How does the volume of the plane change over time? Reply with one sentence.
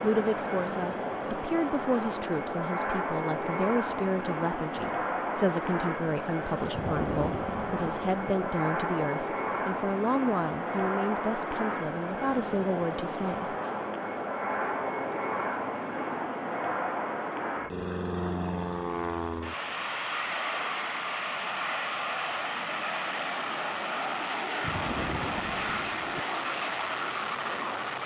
The loudness of the plane stays about the same.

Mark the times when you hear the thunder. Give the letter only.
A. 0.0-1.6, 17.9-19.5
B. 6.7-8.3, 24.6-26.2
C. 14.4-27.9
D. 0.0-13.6
B.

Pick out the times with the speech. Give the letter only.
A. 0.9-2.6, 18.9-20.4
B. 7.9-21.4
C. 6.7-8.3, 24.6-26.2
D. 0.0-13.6
D.